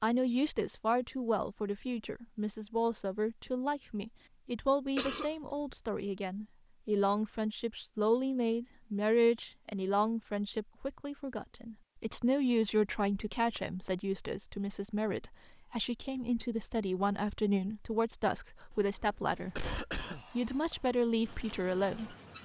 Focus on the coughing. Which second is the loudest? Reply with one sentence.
The loudest moment of the coughing is at 5 seconds.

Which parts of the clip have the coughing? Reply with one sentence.
You can hear the coughing from 5.0 to 5.8 s and from 18.7 to 20.2 s.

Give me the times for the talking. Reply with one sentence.
You can hear the talking from 0.0 to 22.1 s.